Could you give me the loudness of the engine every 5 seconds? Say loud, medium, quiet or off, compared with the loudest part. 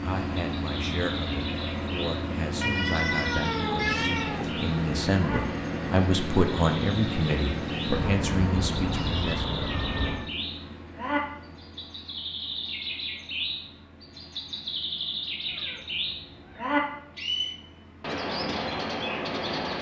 loud, loud, quiet, quiet.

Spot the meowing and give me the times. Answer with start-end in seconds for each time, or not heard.
2.6-4.5, 7.9-10.3, 15.4-16.7.